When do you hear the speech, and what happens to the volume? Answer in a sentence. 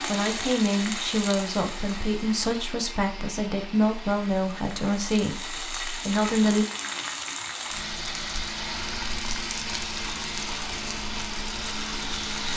You can hear the speech from 0.1 to 6.7 s, at a steady volume.